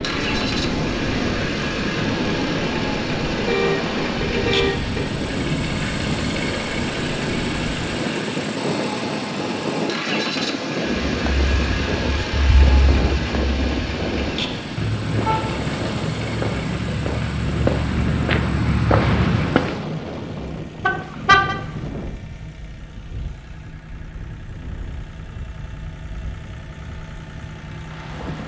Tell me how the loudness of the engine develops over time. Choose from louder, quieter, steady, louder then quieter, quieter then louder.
quieter.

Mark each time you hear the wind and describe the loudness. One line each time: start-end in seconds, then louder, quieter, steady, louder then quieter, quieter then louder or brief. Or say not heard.
0.0-28.4 quieter.